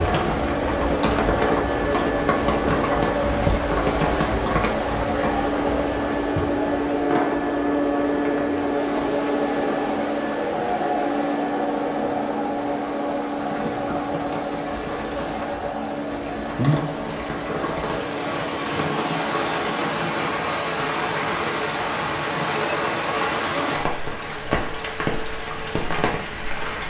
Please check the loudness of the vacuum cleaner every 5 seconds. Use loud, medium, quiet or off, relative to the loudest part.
loud, loud, loud, medium, quiet, quiet.